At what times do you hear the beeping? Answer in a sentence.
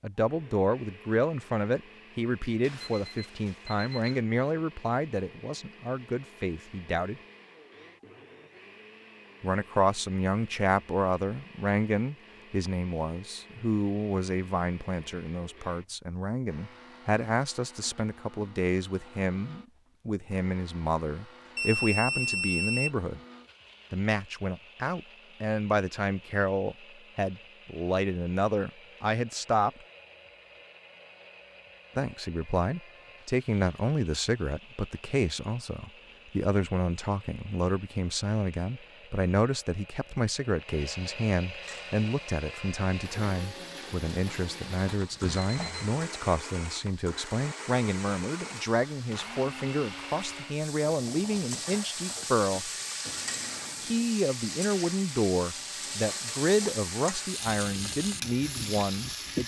The beeping can be heard from 2.6 to 4.2 s, from 21.6 to 22.9 s and from 44.9 to 46.0 s.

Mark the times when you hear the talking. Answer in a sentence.
You can hear the talking from 0.0 to 7.2 s, from 9.4 to 23.2 s, from 23.9 to 29.7 s, from 31.9 to 52.7 s and from 53.8 to 59.4 s.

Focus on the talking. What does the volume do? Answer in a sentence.
The volume of the talking stays about the same.